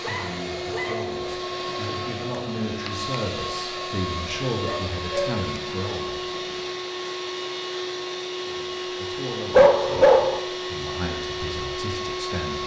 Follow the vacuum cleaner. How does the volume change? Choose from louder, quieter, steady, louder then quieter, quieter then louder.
steady.